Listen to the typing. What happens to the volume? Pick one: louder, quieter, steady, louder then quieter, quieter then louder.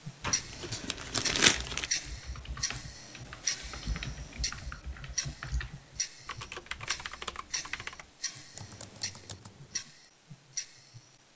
louder then quieter.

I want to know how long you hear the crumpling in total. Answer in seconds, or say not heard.
2 s.